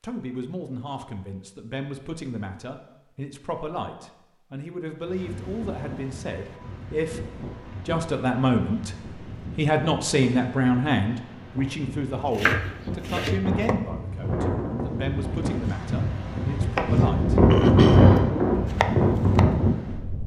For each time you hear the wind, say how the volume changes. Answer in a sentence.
You can hear the wind from 5.0 to 20.2 s, getting louder.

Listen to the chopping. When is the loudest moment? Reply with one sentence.
The loudest moment of the chopping is at 18 seconds.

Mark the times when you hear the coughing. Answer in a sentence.
The coughing can't be heard in this clip.